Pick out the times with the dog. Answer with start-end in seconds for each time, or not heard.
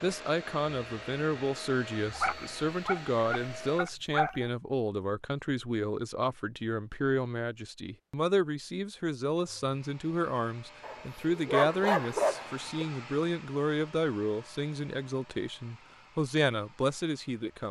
2.1-4.5, 10.8-12.8.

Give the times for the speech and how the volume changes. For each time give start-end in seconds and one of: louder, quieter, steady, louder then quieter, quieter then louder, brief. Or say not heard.
0.0-17.6 steady.